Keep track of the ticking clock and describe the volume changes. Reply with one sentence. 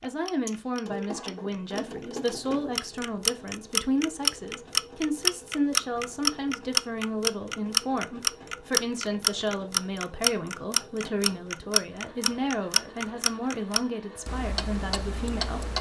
The loudness of the ticking clock goes up, then down.